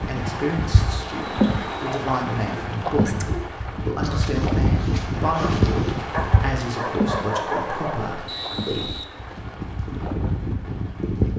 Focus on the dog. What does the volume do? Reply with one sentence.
The volume of the dog goes up.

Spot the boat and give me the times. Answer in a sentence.
The boat can be heard from 0.0 to 11.3 s.